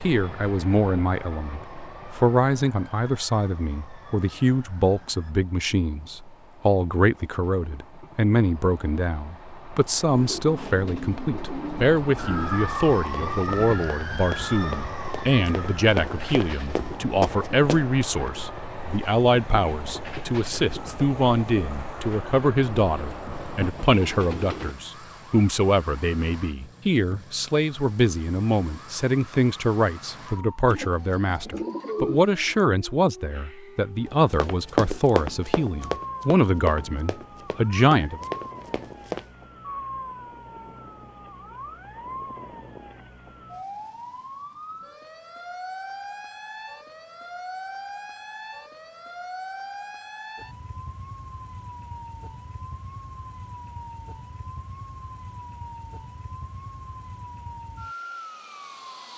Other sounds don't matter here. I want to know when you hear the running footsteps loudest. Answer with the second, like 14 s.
35 s.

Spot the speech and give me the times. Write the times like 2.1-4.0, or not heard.
0.0-38.2.